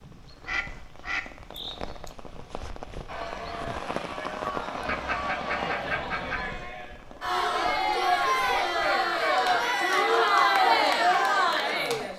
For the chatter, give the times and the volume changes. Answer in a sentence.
You can hear the chatter from 3.0 to 12.1 s, getting louder.